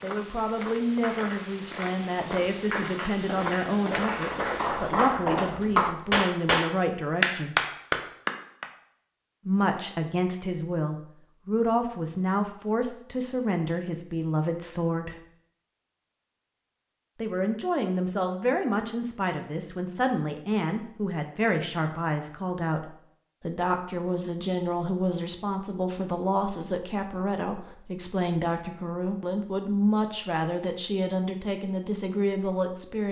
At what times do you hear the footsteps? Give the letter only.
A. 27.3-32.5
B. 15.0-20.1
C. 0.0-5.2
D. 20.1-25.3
C.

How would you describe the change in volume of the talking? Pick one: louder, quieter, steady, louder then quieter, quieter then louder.
steady.